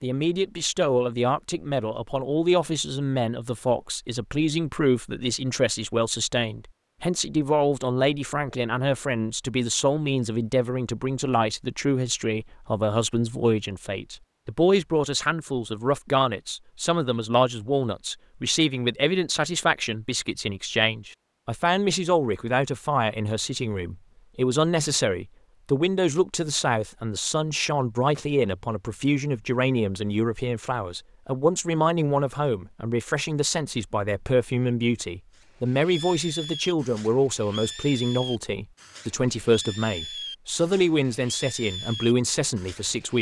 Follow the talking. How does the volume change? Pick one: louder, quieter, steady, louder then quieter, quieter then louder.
steady.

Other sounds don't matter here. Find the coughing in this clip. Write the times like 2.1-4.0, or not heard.
not heard.